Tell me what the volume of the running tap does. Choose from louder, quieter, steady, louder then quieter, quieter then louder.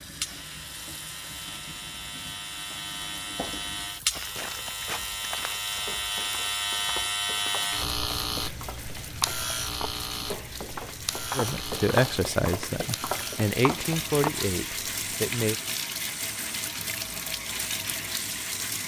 louder.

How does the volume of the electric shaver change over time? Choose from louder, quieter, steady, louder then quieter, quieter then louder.
louder then quieter.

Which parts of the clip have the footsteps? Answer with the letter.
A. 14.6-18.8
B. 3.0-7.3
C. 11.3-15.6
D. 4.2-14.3
D.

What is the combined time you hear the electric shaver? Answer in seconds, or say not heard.
19 s.